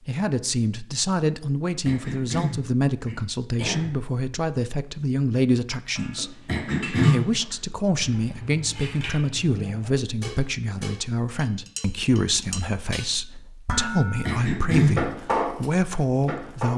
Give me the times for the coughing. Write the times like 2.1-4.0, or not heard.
1.9-4.0, 6.5-7.2, 14.2-15.1.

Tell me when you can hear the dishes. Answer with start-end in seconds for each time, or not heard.
6.0-16.7.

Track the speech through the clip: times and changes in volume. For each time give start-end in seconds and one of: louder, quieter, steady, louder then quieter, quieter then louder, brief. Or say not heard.
0.1-16.7 steady.